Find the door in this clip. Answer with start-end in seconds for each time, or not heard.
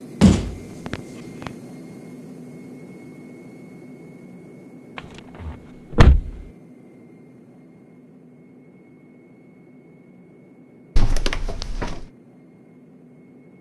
0.2-1.5, 5.0-6.4, 10.9-12.1.